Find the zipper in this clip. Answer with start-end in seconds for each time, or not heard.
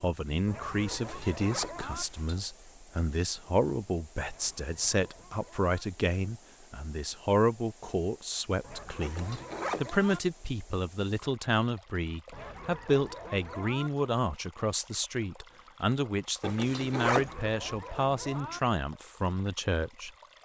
0.9-2.5, 9.0-10.2, 16.4-17.4.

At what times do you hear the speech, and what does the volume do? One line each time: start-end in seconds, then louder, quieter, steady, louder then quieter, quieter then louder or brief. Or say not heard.
0.0-20.1 steady.